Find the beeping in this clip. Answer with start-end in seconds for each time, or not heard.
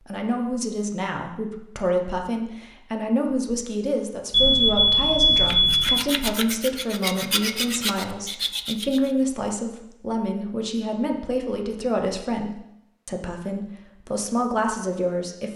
4.3-6.0.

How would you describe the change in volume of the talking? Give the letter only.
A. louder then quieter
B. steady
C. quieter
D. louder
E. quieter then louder
B.